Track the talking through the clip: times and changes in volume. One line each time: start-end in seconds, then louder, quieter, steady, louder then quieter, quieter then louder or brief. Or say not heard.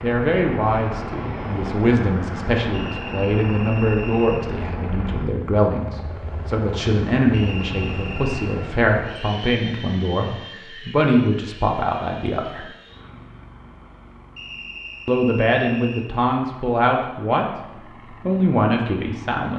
0.0-12.7 steady
15.1-17.4 brief
18.2-19.5 brief.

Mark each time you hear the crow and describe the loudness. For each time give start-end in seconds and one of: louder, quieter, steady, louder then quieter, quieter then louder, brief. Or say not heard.
not heard.